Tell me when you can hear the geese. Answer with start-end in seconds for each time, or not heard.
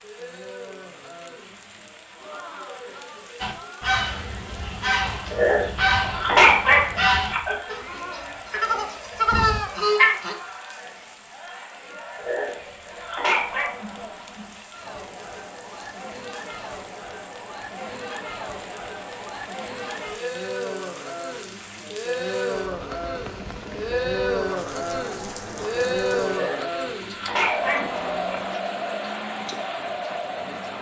3.4-10.3.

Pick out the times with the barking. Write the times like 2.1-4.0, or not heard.
5.3-7.5, 12.2-13.8, 26.2-28.4.